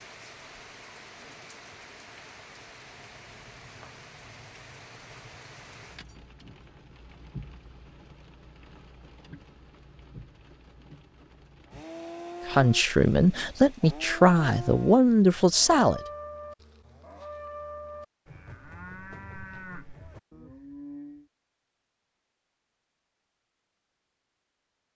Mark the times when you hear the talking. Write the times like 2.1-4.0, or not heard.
12.4-16.0.